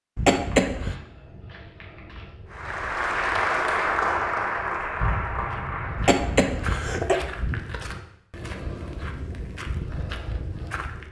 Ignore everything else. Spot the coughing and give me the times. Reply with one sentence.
The coughing can be heard from 0.1 to 0.9 s and from 6.0 to 7.2 s.